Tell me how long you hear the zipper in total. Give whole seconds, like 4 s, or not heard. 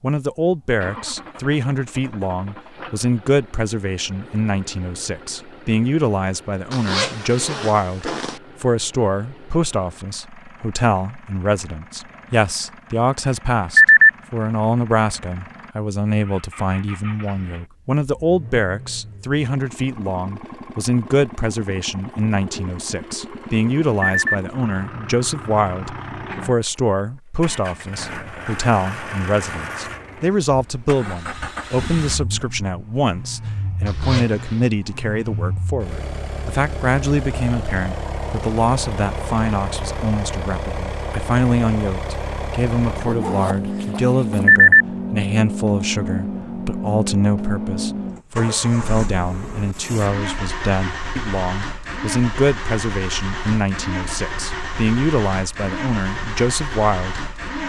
4 s.